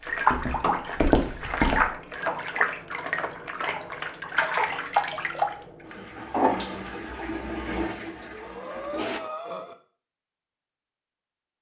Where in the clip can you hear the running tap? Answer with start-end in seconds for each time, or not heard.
0.0-9.2.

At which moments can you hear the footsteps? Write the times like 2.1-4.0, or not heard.
0.1-1.9.